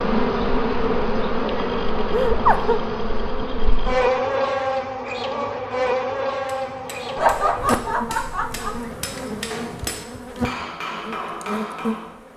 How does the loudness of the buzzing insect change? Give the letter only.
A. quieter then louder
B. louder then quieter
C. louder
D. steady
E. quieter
E.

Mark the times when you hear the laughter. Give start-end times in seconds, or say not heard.
2.1-2.8, 7.2-8.8.